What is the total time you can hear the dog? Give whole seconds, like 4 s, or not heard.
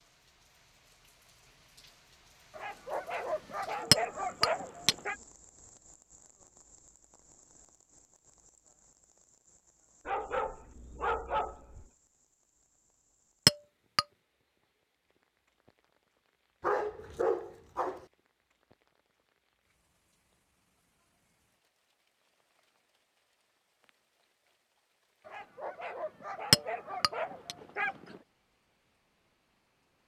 9 s.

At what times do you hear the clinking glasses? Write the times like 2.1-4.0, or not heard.
3.9-5.0, 13.4-14.1, 26.5-27.6.